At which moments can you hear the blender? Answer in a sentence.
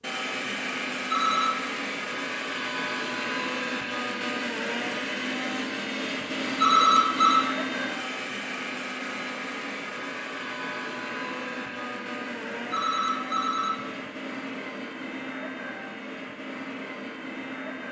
The blender can be heard from 0.0 to 17.8 s.